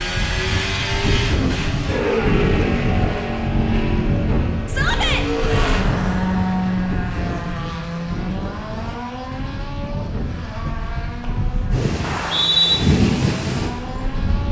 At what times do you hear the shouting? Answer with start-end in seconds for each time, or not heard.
4.7-5.2.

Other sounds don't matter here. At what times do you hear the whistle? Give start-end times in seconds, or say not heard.
12.0-12.8.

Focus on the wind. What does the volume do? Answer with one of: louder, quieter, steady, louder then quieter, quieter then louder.
quieter then louder.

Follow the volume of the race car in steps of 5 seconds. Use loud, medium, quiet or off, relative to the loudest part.
loud, loud, medium.